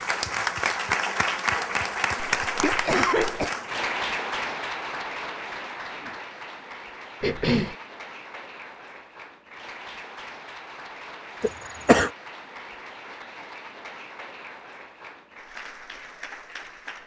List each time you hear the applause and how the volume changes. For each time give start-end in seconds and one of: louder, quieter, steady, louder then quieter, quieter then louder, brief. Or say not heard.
0.0-17.0 quieter.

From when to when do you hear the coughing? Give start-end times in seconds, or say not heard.
2.5-3.5, 7.2-7.8, 11.4-12.1.